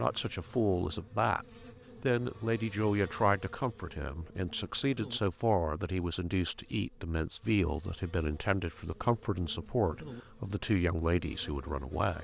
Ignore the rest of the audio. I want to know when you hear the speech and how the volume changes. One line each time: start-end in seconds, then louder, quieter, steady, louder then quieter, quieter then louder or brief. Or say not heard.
0.0-12.1 steady.